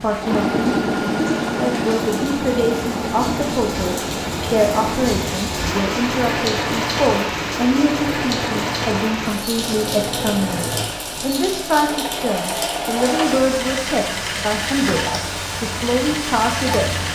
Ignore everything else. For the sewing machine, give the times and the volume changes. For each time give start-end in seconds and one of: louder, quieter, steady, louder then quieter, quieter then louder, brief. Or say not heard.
0.0-17.0 quieter.